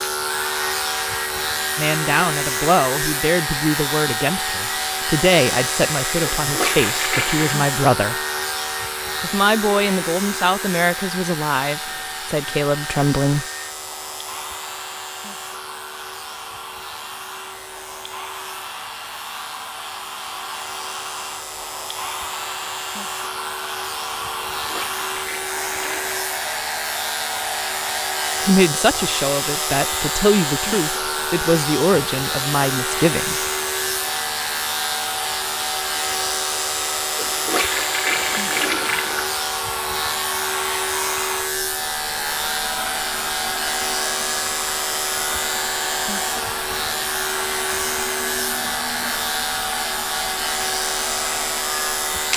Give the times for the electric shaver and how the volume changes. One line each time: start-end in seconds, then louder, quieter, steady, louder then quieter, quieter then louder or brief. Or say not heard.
0.0-52.3 quieter then louder.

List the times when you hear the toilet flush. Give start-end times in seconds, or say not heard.
6.3-7.5, 24.6-26.2, 37.1-39.2.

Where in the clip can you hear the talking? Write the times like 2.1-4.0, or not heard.
1.8-8.2, 9.2-13.4, 28.4-33.5.